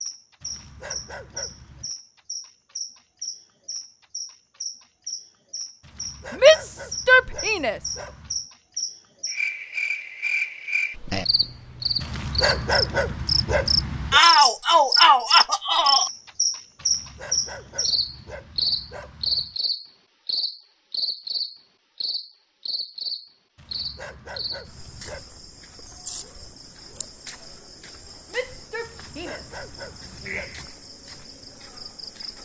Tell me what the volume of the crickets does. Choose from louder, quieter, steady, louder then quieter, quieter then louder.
louder then quieter.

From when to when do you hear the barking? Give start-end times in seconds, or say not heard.
0.4-1.9, 5.8-8.4, 12.0-14.2, 16.8-19.6, 23.6-25.2, 28.8-30.7.